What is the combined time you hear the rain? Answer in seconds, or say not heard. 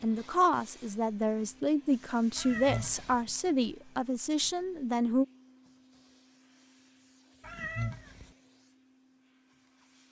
not heard.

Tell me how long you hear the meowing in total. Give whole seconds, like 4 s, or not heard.
2 s.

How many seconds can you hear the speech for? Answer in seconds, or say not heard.
5 s.